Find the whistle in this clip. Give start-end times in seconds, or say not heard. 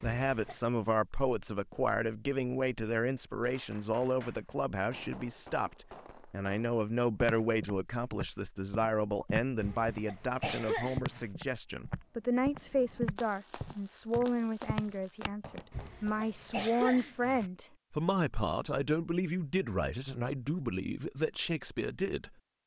not heard.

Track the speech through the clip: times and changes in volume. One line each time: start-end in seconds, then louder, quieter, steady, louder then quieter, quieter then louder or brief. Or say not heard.
0.0-22.4 steady.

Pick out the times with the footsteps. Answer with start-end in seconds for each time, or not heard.
7.2-15.7.